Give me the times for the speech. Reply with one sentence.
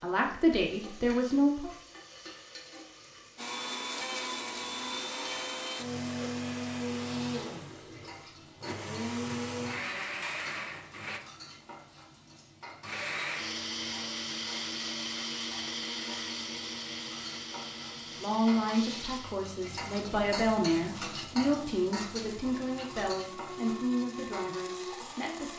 You can hear the speech from 0.0 to 1.7 s and from 18.1 to 25.5 s.